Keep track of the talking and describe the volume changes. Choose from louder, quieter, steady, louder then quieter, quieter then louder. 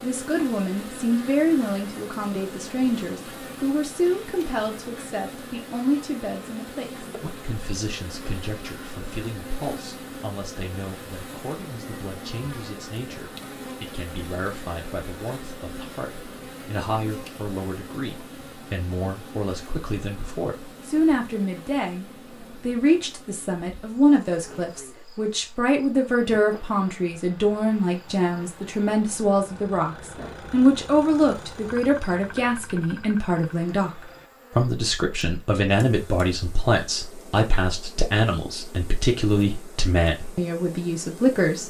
quieter then louder.